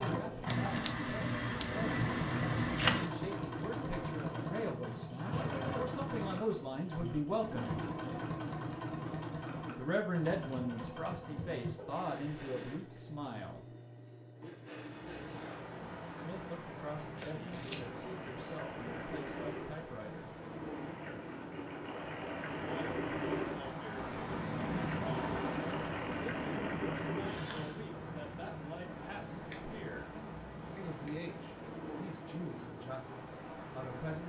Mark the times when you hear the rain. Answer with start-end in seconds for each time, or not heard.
14.8-34.2.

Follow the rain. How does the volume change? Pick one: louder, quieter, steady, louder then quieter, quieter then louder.
louder then quieter.